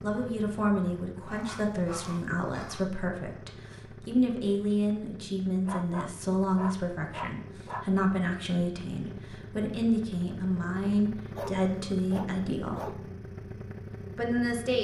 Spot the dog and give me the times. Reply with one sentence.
The dog can be heard from 1.2 to 2.9 s, from 5.7 to 7.9 s and from 10.8 to 12.9 s.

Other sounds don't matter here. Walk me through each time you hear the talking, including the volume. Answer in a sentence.
You can hear the talking from 0.0 to 12.9 s, at a steady volume; and briefly from 14.2 to 14.8 s.